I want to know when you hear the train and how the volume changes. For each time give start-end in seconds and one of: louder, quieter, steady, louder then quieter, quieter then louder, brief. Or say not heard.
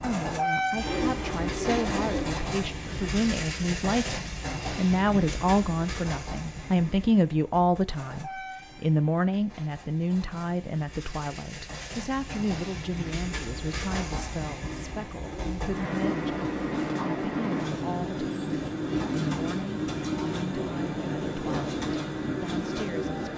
0.0-23.3 quieter then louder.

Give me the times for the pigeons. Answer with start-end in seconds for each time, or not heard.
0.8-2.4, 15.2-16.9.